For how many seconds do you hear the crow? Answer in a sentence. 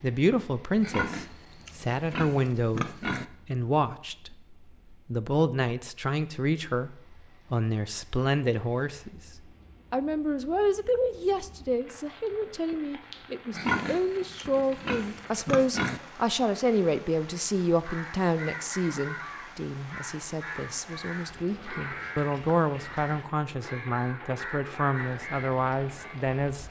The crow can be heard for 8 seconds in total.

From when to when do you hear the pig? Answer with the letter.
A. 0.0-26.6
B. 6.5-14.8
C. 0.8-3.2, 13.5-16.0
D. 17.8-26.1
C.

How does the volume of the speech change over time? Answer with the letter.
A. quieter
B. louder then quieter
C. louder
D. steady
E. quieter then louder
D.